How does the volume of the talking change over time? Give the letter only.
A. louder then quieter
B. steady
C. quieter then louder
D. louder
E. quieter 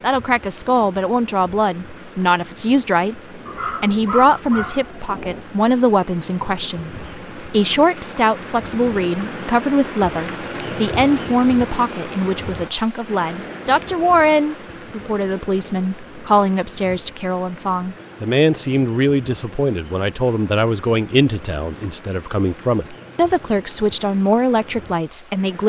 B.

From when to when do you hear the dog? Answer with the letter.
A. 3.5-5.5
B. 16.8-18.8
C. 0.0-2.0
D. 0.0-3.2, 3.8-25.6
A.